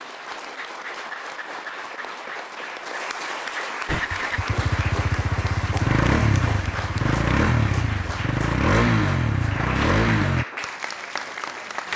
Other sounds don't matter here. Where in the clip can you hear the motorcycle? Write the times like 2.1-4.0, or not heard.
3.9-10.4.